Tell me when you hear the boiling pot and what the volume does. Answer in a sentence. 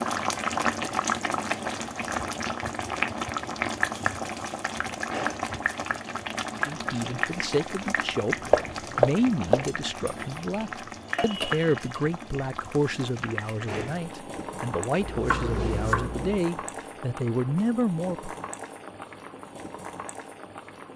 You can hear the boiling pot from 0.0 to 20.9 s, getting quieter.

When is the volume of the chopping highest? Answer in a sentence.
The loudest moment of the chopping is at 9 seconds.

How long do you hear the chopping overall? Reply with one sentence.
You can hear the chopping for 3 seconds altogether.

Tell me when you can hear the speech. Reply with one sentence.
The speech can be heard from 6.5 to 18.4 s.